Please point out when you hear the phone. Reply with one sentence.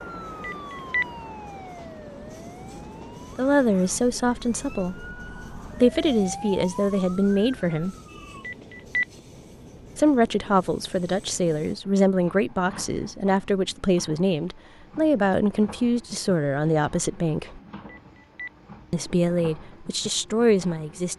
You can hear the phone from 0.4 to 1.1 s, from 8.4 to 9.1 s and from 17.9 to 18.5 s.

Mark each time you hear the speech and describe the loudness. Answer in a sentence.
You can hear the speech briefly from 3.4 to 5.0 s; briefly from 5.8 to 8.0 s; from 9.9 to 17.6 s, at a steady volume; and briefly from 18.9 to 21.1 s.